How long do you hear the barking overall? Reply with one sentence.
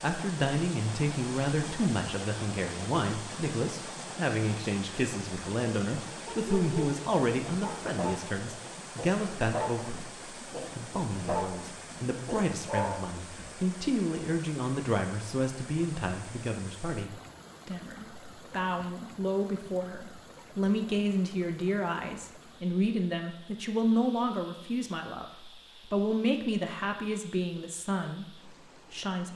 You can hear the barking for 5 seconds altogether.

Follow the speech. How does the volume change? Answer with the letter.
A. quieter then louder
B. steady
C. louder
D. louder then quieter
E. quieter
B.